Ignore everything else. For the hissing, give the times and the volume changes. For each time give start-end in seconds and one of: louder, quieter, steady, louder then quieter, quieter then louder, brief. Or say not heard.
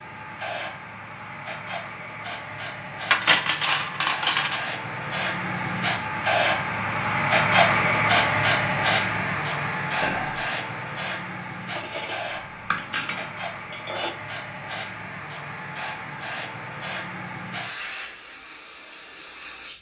0.0-19.7 louder then quieter.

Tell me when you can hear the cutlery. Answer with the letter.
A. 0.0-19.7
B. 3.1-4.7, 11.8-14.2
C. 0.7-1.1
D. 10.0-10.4
B.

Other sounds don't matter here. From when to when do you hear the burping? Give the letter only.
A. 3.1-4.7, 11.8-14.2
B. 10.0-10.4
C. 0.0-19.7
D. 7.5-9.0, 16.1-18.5
B.